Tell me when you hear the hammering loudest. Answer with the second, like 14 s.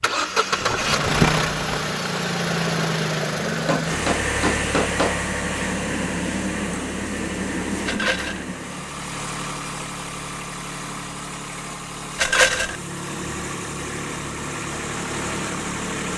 5 s.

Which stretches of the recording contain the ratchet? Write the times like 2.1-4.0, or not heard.
not heard.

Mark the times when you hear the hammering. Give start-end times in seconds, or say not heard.
3.5-5.2.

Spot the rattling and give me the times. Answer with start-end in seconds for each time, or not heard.
0.6-1.9, 7.8-8.4, 12.2-12.8.